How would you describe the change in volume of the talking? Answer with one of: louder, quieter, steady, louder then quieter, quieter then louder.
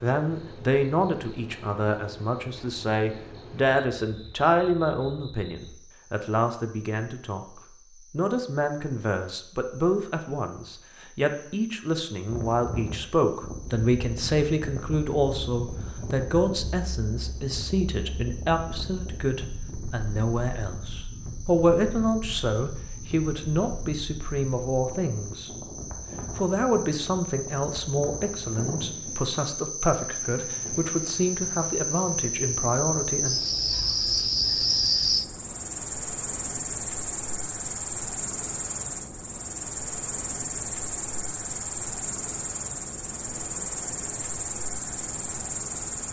steady.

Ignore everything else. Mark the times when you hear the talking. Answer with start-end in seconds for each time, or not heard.
0.0-7.5, 8.1-25.6, 26.4-33.4.